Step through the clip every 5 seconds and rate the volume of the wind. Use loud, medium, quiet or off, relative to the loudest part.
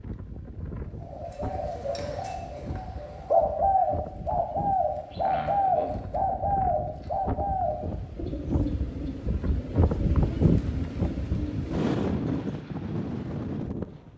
quiet, medium, loud.